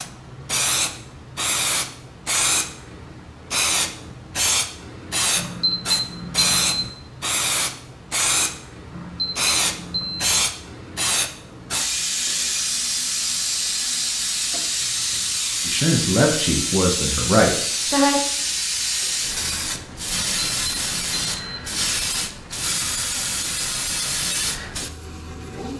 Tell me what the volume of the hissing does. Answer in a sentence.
The volume of the hissing stays about the same.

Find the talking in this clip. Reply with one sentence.
The talking can be heard from 15.7 to 18.2 s.